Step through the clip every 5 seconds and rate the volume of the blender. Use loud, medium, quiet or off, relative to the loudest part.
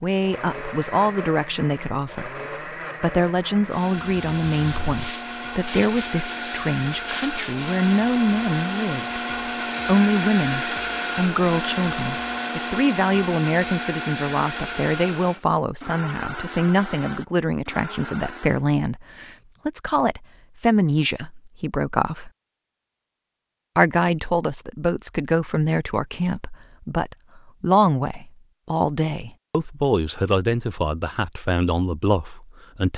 medium, loud, loud, medium, off, off, off.